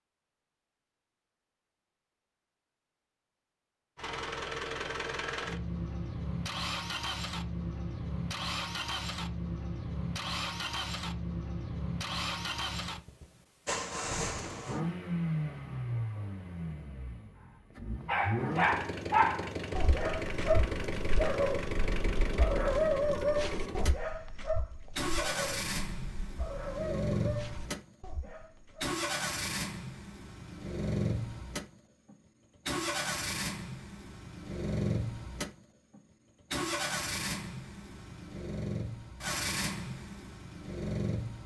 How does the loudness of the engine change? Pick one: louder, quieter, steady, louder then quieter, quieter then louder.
steady.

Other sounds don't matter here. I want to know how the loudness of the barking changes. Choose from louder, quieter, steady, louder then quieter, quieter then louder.
quieter.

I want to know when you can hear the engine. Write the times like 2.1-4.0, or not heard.
4.0-41.4.